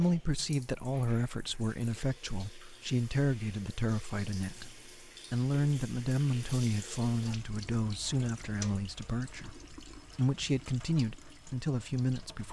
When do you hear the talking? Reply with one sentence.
The talking can be heard from 0.0 to 12.4 s.